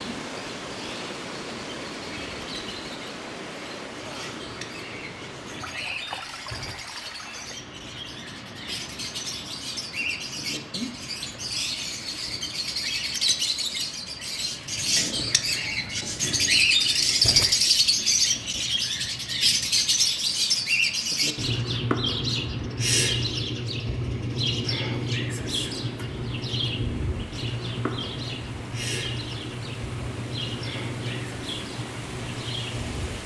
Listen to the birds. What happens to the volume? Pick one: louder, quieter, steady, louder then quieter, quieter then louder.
louder then quieter.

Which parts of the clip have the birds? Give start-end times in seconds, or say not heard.
0.0-33.2.